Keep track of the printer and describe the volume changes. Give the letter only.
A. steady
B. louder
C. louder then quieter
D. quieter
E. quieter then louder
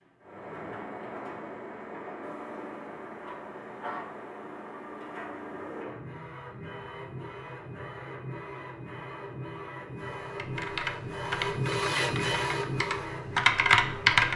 B.